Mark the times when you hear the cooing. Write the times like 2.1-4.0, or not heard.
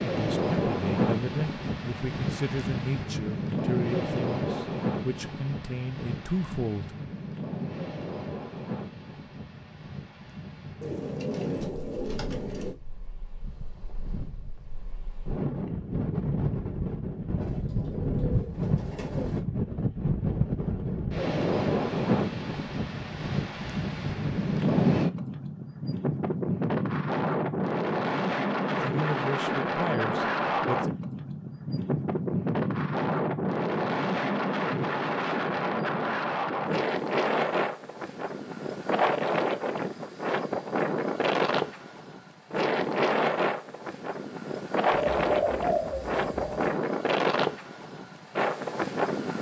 10.8-12.8, 17.4-19.4, 45.1-46.8.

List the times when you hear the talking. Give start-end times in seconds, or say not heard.
0.0-6.9, 28.6-30.9.